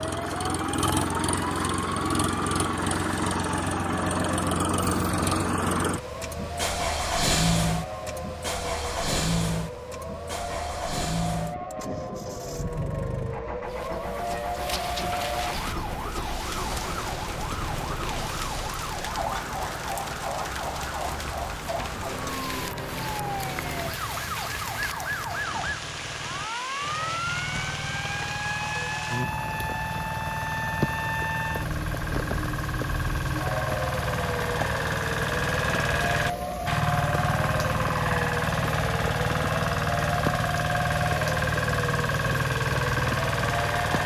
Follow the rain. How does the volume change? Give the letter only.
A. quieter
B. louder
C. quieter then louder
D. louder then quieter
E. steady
E.